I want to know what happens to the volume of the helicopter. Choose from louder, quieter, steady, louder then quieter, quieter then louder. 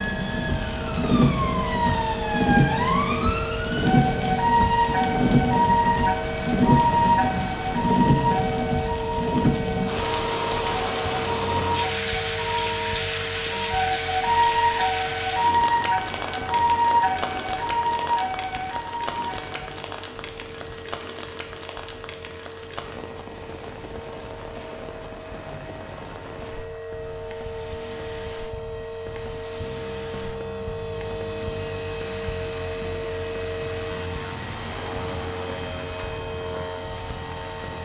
quieter then louder.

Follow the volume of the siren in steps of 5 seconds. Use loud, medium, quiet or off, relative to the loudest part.
loud, loud, loud, loud, off, off, off, off.